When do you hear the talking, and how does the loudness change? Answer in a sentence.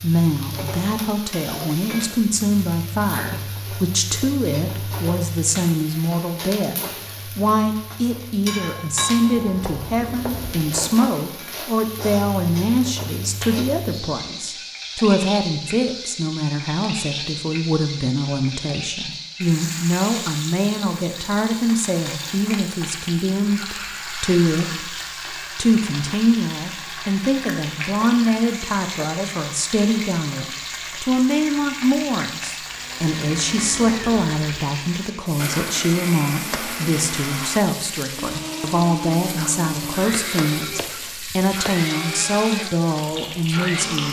The talking can be heard from 0.0 to 24.9 s, at a steady volume; and from 25.6 to 44.0 s, at a steady volume.